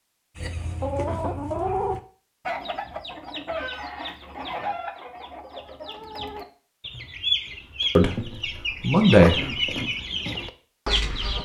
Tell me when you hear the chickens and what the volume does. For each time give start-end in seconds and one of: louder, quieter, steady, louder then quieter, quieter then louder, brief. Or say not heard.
0.3-11.3 quieter then louder.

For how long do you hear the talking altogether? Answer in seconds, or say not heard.
2 s.